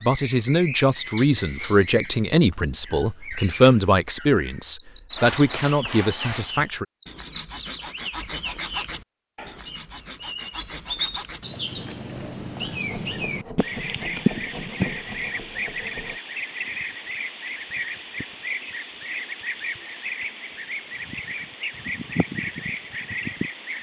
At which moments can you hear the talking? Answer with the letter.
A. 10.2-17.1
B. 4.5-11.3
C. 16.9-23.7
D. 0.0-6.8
D.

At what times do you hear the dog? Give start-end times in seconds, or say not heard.
not heard.